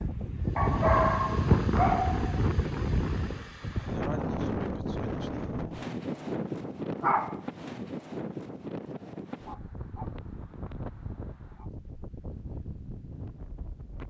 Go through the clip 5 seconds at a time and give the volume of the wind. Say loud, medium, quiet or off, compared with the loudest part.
loud, medium, quiet.